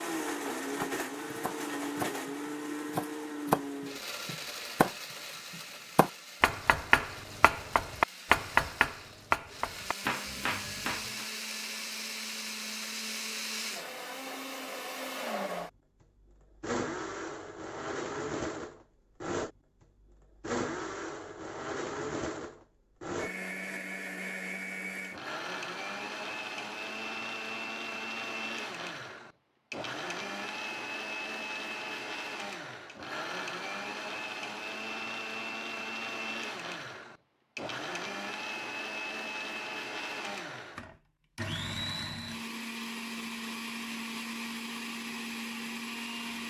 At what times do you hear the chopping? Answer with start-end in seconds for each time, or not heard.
0.8-11.2.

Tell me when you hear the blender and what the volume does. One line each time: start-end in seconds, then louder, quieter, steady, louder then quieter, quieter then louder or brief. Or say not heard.
0.0-46.4 steady.